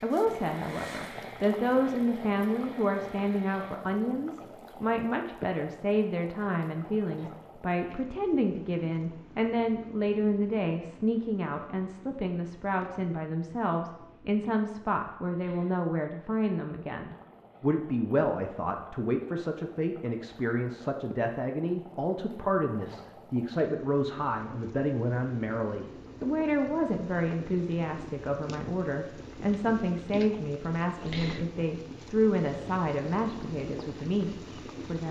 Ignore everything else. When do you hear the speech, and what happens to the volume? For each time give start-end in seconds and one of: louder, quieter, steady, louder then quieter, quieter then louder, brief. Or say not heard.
0.0-35.0 steady.